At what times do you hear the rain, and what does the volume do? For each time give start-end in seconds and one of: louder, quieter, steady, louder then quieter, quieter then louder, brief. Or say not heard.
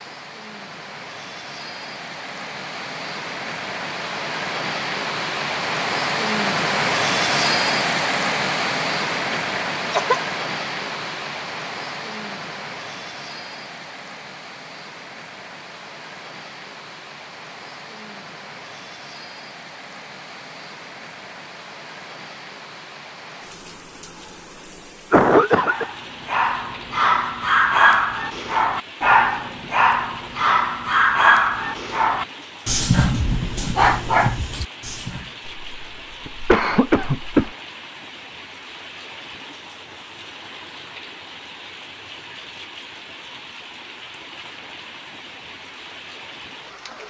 0.0-47.0 quieter.